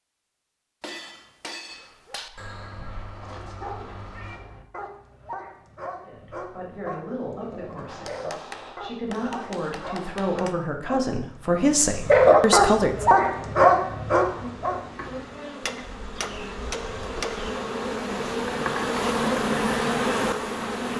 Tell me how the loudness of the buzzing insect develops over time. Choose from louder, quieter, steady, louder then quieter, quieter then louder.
louder.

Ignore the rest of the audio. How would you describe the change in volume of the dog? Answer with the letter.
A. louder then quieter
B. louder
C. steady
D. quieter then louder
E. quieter
B.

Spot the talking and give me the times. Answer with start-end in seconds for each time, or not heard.
6.0-13.1.